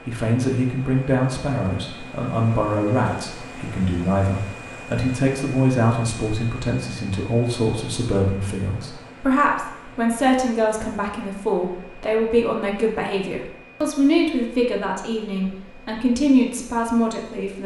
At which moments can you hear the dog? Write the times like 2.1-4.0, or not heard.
not heard.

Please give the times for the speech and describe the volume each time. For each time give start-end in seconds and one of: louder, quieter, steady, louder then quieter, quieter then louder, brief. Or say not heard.
0.1-17.6 steady.